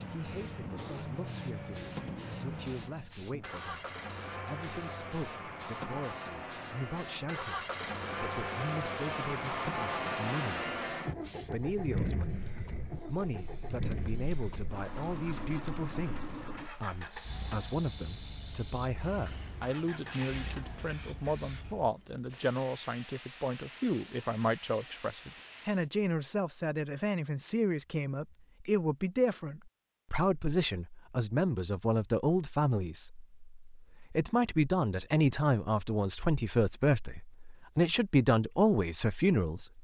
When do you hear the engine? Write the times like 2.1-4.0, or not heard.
0.0-21.9.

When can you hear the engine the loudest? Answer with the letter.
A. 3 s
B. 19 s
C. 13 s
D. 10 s
D.